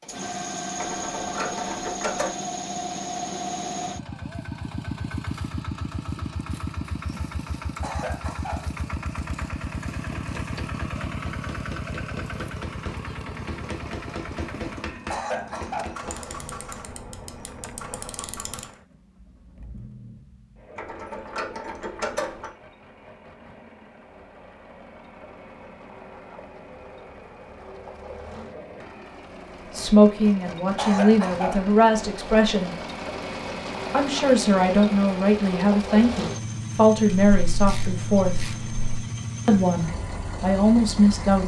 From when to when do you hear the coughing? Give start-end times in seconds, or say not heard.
7.8-8.7, 15.1-16.0, 30.8-31.6.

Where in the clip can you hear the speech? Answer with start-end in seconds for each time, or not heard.
29.8-32.8, 33.9-38.5, 39.5-41.4.